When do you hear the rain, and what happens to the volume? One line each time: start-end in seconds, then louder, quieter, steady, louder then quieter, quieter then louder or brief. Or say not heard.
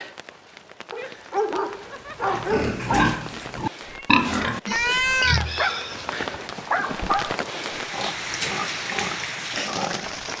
0.0-10.3 louder.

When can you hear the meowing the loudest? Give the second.
5 s.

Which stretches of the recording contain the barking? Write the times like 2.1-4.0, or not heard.
0.9-3.1, 5.5-7.3.